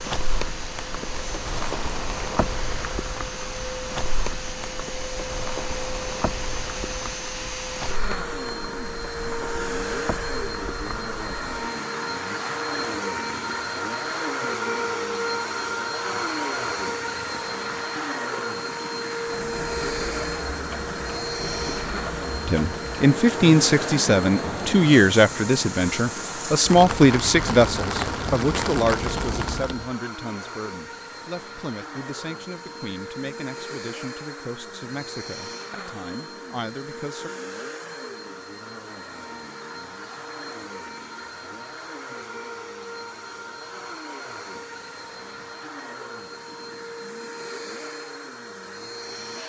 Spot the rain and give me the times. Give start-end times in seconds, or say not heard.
0.0-29.9.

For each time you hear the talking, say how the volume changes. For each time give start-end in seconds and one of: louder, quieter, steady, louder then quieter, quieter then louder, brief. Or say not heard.
22.4-37.3 quieter.